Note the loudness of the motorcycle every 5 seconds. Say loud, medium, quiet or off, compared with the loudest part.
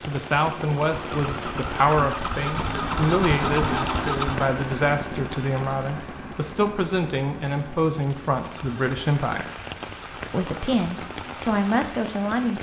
loud, medium, quiet.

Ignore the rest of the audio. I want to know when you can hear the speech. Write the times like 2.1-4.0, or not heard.
0.0-9.5, 10.3-12.5.